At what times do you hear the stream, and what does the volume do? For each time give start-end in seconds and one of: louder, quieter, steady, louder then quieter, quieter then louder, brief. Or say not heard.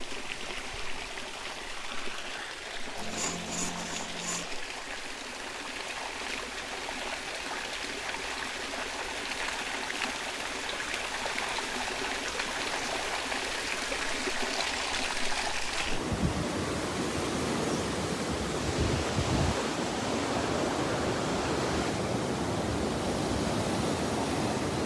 0.0-24.8 louder.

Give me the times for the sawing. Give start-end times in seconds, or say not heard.
3.0-4.5.